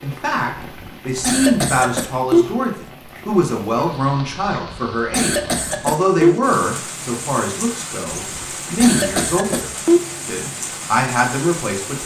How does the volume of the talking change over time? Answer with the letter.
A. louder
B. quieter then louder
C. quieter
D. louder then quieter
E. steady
E.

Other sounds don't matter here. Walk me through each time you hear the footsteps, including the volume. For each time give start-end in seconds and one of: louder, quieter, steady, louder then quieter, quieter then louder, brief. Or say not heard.
not heard.